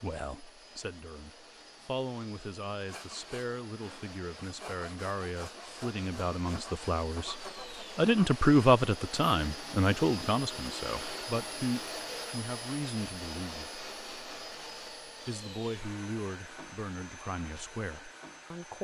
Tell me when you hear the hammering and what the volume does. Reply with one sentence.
You can't hear the hammering here.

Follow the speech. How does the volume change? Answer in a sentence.
The volume of the speech goes up, then down.